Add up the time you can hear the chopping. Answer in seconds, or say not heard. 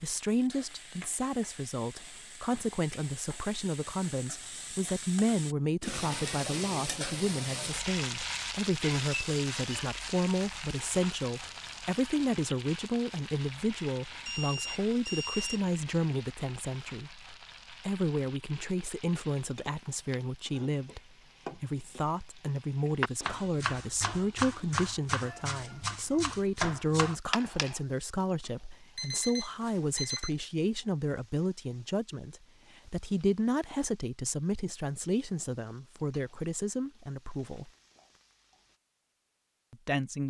5 s.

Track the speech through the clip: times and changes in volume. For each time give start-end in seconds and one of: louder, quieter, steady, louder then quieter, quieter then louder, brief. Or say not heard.
0.0-37.7 steady
39.7-40.2 brief.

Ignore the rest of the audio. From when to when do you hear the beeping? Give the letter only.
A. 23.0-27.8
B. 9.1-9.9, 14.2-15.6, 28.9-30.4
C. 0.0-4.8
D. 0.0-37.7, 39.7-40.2
B.